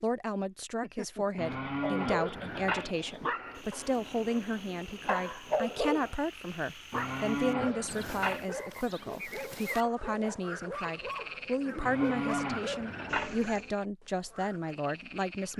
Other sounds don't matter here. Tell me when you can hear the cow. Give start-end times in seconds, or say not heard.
1.4-3.0, 6.9-8.4, 11.8-13.3.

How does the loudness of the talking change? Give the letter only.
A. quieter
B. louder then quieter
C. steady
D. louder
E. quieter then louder
C.